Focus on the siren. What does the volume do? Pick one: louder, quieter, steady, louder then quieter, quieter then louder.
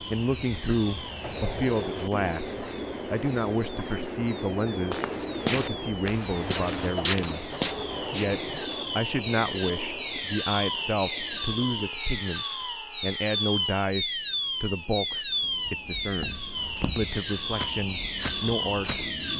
louder.